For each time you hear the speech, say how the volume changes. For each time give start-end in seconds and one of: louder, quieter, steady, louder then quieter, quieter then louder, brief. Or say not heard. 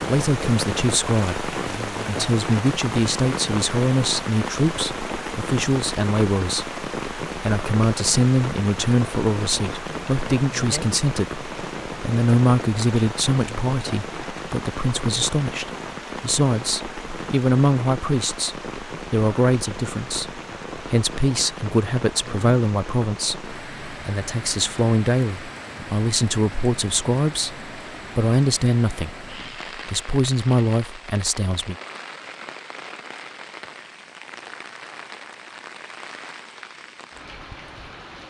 0.1-31.8 steady.